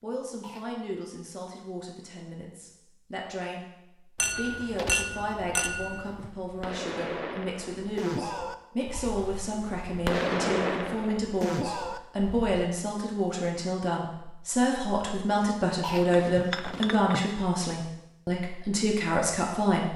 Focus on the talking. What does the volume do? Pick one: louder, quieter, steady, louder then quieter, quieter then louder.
louder.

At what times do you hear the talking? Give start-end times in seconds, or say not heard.
0.0-19.9.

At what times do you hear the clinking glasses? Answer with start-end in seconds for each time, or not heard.
4.2-6.3, 16.1-17.2.